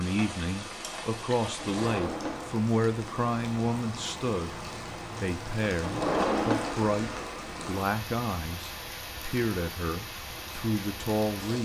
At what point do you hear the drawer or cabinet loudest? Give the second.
6 s.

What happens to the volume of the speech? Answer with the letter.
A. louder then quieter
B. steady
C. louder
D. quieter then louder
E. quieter
B.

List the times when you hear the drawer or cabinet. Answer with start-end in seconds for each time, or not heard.
1.6-2.6, 5.8-7.3.